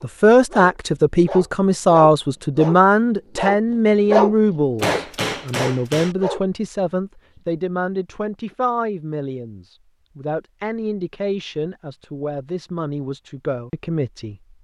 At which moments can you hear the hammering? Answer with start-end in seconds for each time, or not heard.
4.8-6.2.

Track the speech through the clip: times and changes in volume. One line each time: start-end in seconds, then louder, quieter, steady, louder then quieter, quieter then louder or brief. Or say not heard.
0.0-14.5 quieter.